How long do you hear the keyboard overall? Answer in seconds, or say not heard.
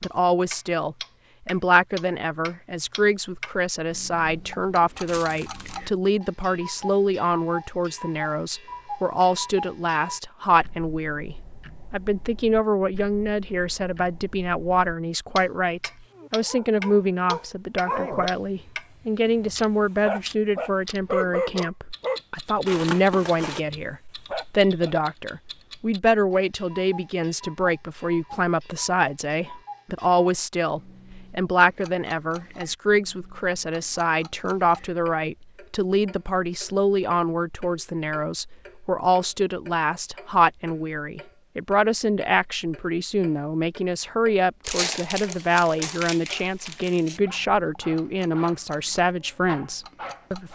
not heard.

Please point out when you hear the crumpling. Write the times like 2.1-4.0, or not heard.
5.0-5.8, 22.6-23.6, 44.6-47.2.